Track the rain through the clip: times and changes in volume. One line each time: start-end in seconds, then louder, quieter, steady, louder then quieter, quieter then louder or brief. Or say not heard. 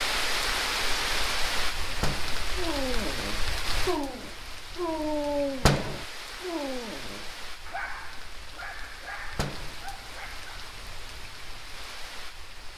0.0-12.7 quieter.